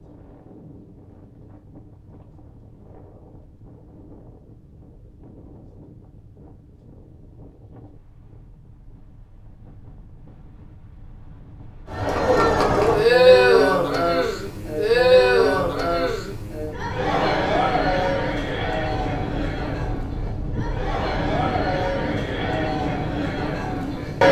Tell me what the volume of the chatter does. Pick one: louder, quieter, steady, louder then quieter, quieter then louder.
quieter.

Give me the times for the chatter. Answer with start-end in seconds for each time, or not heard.
11.9-24.2.